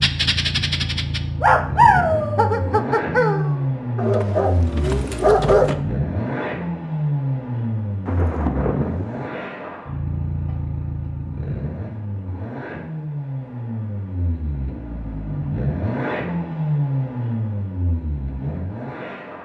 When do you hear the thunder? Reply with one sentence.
You can hear the thunder from 8.1 to 9.3 s.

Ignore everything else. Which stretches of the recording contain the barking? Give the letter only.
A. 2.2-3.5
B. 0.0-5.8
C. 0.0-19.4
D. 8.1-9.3
B.